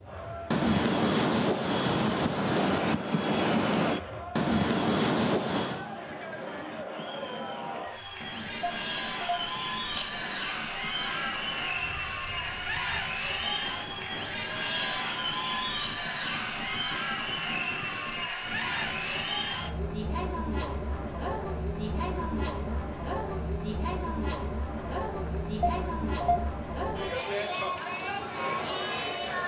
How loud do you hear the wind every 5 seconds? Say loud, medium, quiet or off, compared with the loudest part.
loud, medium, quiet, quiet, quiet, quiet.